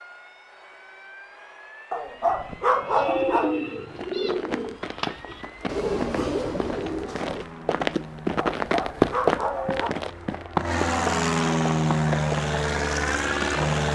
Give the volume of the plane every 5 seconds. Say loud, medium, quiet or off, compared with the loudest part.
quiet, quiet, loud.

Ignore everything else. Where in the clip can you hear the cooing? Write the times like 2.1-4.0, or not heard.
2.4-7.5.